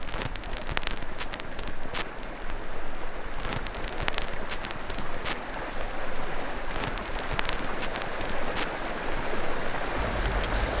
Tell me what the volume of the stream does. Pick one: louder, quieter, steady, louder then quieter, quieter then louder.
louder.